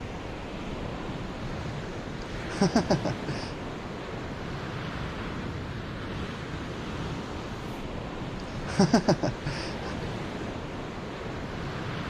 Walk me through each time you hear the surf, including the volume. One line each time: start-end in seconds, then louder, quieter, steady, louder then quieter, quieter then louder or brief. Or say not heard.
0.0-12.0 steady.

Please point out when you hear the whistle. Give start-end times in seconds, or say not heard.
not heard.